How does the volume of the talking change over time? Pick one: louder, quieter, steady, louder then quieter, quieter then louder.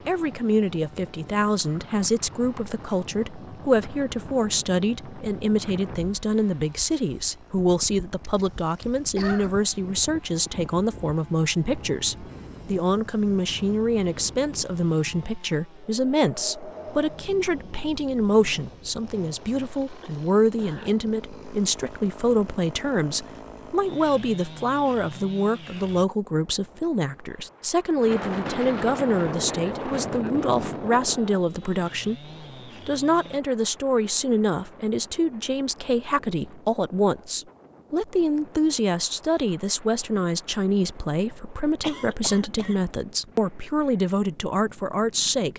steady.